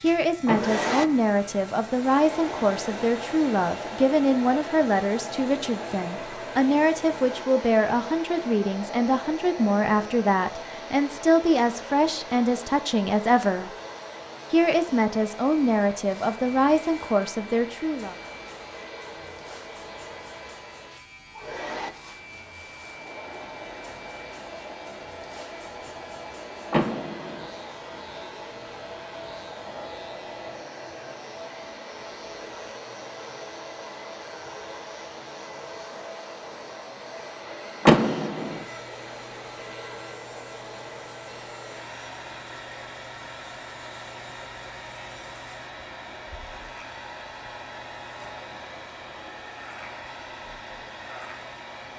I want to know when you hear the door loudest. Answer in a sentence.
The volume of the door peaks at 38 seconds.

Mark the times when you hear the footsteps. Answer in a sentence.
You can't hear the footsteps here.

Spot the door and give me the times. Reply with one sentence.
The door can be heard from 0.5 to 1.2 s, from 26.7 to 27.5 s and from 37.9 to 38.6 s.